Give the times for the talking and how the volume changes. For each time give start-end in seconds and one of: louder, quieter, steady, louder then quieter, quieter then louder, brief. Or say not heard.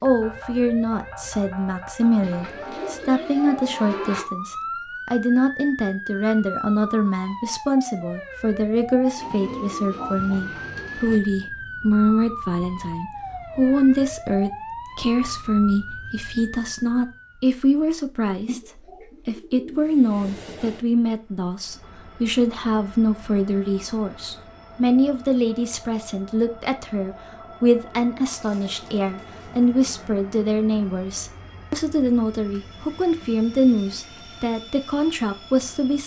0.0-36.0 steady.